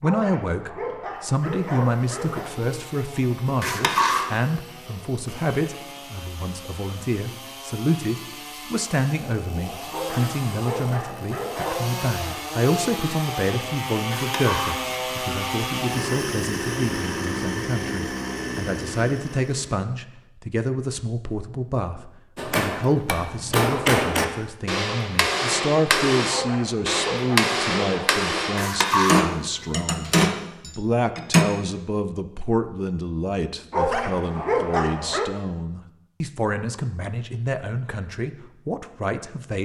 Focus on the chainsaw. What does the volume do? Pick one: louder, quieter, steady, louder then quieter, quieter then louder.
louder.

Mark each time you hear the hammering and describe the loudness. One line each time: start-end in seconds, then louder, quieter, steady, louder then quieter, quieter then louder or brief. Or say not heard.
22.4-31.4 steady.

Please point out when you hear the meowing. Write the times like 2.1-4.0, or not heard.
3.6-4.2, 14.1-14.8, 28.6-30.1.